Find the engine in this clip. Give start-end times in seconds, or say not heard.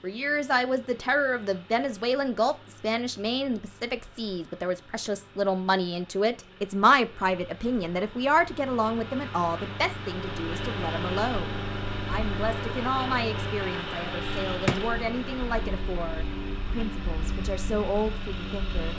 0.0-18.9.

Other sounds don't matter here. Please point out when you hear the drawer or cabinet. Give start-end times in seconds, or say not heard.
14.3-14.8.